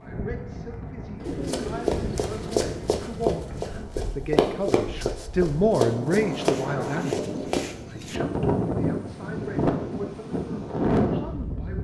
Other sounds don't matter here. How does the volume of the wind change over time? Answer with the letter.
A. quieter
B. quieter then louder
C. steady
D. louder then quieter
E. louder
E.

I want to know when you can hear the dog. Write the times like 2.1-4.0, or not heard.
not heard.